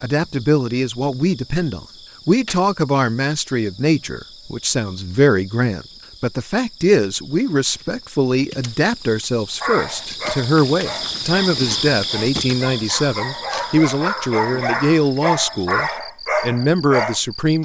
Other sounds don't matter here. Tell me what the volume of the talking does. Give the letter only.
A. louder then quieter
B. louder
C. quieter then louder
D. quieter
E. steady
E.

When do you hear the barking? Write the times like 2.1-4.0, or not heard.
9.6-17.2.